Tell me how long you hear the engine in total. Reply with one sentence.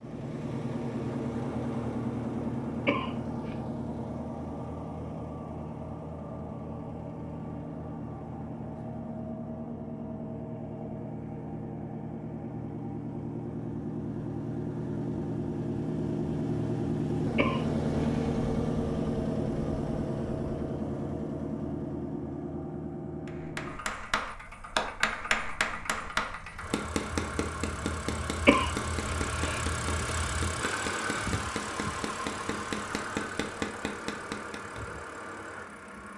You can hear the engine for 36 seconds altogether.